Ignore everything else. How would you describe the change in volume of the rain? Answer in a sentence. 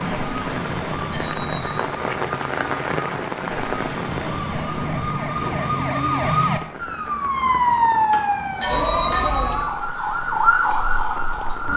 The volume of the rain goes down.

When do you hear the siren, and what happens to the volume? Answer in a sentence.
You can hear the siren from 0.0 to 11.7 s, getting louder.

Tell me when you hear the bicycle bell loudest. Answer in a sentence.
The loudest moment of the bicycle bell is at 9 seconds.